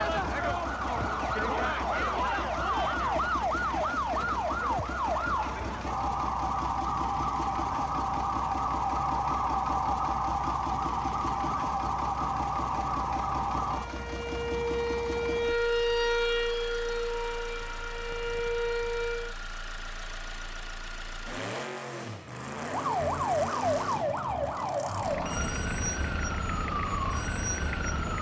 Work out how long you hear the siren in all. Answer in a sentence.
You can hear the siren for 25 seconds altogether.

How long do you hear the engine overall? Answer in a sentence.
You can hear the engine for 28 seconds altogether.